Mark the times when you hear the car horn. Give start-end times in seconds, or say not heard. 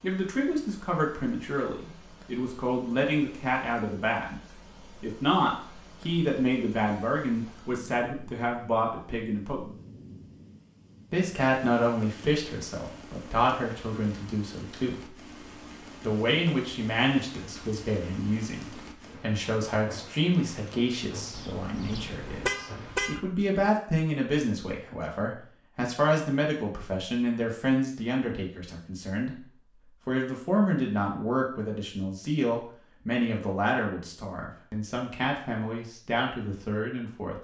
21.3-23.2.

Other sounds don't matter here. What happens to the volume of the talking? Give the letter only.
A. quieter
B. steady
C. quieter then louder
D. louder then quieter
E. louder
B.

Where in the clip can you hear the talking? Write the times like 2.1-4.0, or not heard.
0.0-9.7, 11.1-15.3, 16.1-29.4, 30.1-37.3.